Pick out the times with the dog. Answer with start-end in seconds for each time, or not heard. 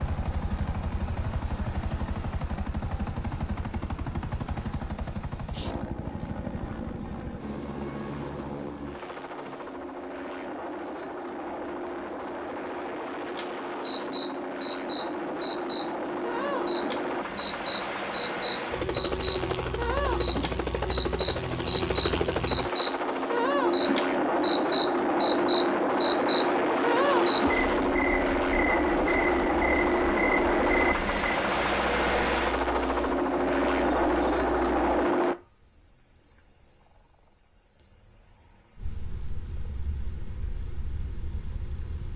not heard.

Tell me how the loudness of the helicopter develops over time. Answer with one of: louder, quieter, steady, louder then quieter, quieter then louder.
louder.